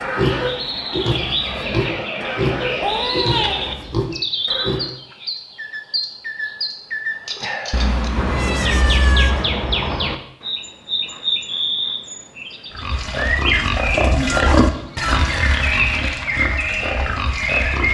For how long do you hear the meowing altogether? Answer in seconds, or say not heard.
4 s.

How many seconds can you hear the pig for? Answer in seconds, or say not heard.
10 s.